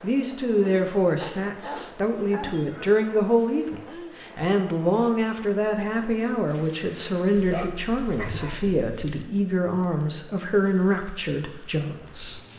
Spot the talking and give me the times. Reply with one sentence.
The talking can be heard from 0.0 to 12.4 s.